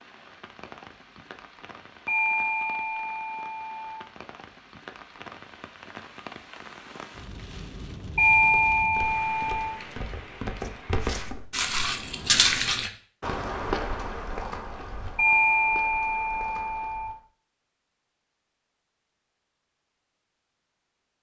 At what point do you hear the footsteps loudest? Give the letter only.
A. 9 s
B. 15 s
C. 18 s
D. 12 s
D.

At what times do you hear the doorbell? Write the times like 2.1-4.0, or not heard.
2.0-4.0, 8.2-9.8, 15.2-17.1.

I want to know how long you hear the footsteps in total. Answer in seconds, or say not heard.
9 s.